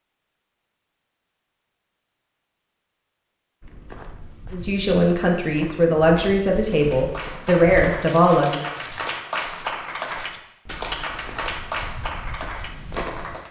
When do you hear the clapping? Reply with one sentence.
The clapping can be heard from 6.8 to 13.4 s.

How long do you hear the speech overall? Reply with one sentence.
You can hear the speech for 4 seconds altogether.